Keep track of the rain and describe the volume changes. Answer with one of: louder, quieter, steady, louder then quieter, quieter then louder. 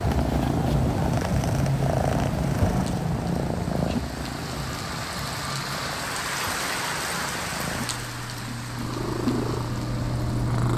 louder then quieter.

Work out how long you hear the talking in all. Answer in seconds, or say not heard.
not heard.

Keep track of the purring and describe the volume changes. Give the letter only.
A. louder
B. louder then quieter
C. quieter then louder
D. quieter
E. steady
C.